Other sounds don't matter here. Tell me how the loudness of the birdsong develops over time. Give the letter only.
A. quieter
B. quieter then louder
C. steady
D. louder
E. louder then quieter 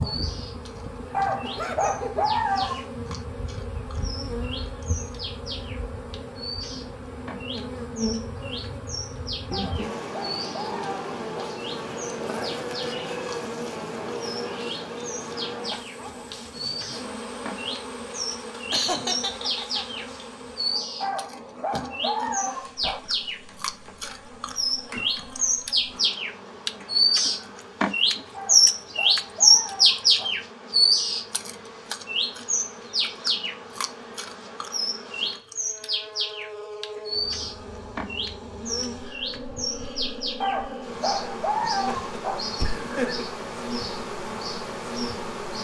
E.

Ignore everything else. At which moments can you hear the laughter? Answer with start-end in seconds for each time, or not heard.
1.4-2.2, 18.7-20.1, 41.8-43.2.